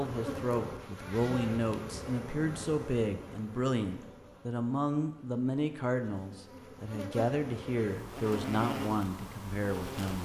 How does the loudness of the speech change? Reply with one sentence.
The volume of the speech stays about the same.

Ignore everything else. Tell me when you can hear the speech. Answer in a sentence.
You can hear the speech from 0.0 to 10.2 s.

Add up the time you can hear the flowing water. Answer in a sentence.
The flowing water can't be heard in this clip.